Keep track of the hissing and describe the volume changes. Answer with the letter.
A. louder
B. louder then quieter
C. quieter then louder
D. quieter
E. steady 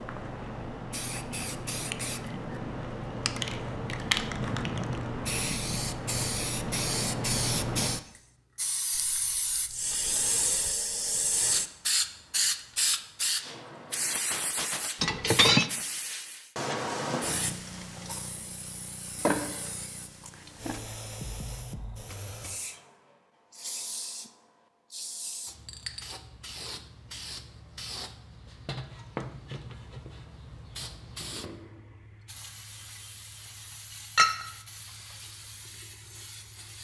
D.